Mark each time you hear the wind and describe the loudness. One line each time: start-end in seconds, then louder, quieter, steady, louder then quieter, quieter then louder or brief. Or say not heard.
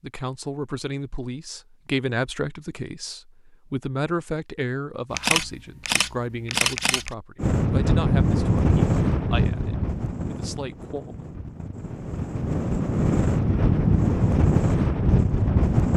7.3-15.9 quieter then louder.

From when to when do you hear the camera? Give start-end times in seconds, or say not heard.
5.1-7.1.